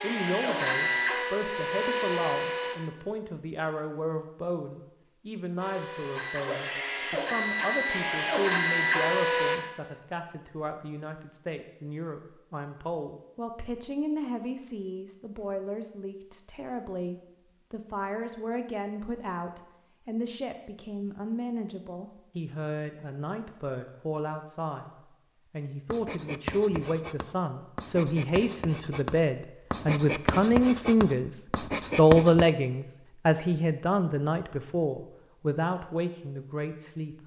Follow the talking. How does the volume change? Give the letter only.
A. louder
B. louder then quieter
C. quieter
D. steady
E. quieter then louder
A.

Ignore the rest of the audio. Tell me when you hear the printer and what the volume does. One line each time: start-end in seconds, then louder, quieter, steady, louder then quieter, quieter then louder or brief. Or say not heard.
0.0-2.8 brief
5.5-9.6 louder.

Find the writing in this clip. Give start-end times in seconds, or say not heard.
25.9-32.5.